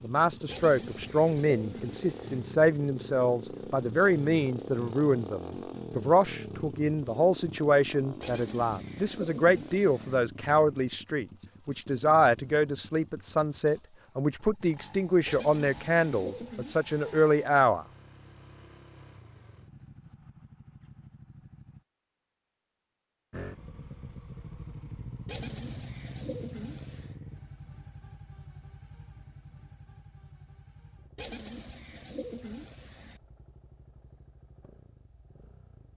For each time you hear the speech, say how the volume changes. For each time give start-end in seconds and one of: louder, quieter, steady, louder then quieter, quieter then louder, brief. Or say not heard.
0.0-17.9 steady.